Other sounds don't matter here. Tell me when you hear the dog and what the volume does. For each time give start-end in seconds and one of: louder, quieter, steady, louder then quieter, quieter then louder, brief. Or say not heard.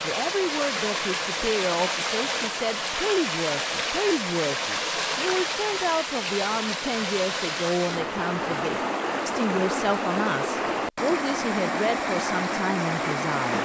not heard.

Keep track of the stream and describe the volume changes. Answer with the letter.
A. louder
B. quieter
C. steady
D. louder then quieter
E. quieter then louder
C.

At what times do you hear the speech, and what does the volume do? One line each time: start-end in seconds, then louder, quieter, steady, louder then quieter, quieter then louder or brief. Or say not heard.
0.0-13.5 steady.